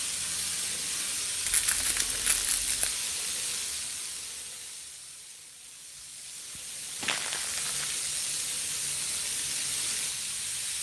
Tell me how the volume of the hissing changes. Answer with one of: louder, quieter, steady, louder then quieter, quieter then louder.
quieter then louder.